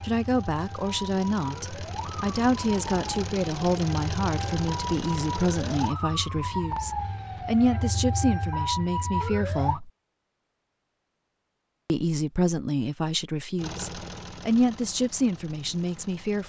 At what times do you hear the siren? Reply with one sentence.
You can hear the siren from 0.0 to 9.8 s.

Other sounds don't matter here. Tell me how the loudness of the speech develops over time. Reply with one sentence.
The volume of the speech stays about the same.